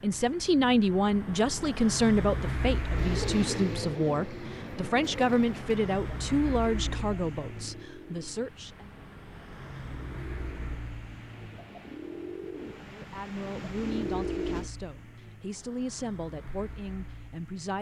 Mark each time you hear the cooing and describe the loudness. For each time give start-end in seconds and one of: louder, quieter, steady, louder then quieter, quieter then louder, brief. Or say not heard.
2.9-14.7 quieter then louder.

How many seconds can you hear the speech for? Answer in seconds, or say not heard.
14 s.